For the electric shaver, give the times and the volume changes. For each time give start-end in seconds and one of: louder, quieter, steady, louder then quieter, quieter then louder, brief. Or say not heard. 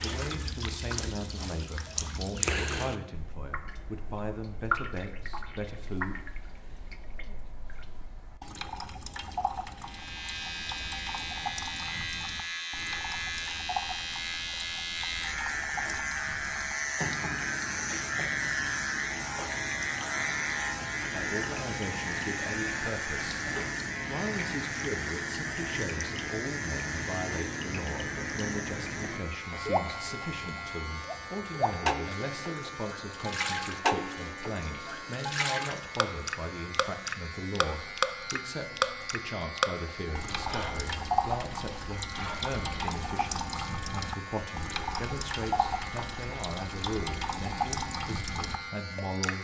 9.8-49.3 quieter.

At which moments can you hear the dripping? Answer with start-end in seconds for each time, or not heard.
0.0-49.3.